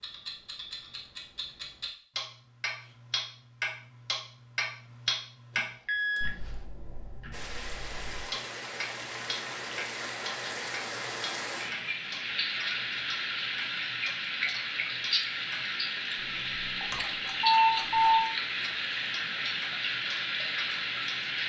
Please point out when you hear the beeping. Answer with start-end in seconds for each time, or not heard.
5.5-6.7, 16.9-18.2.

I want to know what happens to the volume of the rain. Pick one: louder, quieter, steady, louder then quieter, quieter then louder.
louder.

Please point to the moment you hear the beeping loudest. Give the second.
18 s.